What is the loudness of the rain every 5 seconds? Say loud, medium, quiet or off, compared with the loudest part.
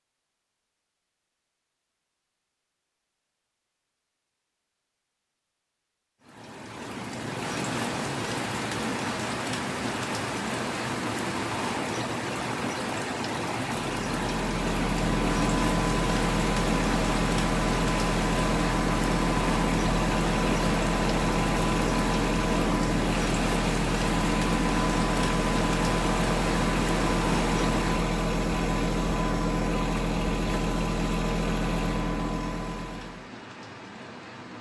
off, loud, loud, loud, loud, loud, quiet.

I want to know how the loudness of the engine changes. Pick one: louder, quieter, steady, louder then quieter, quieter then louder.
steady.